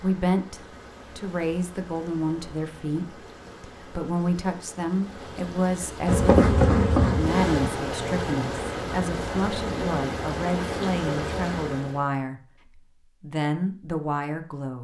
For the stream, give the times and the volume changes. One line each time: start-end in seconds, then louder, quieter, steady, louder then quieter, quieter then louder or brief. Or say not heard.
0.0-12.1 louder.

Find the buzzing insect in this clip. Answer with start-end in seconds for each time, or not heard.
6.0-7.6.